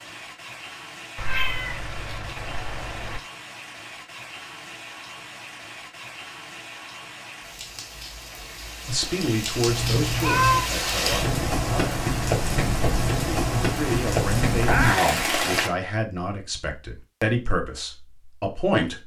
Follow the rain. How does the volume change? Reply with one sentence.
The volume of the rain goes up.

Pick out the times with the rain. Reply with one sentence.
The rain can be heard from 0.0 to 15.7 s.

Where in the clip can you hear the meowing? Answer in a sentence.
The meowing can be heard from 1.1 to 3.2 s, from 9.7 to 10.7 s and from 14.6 to 15.2 s.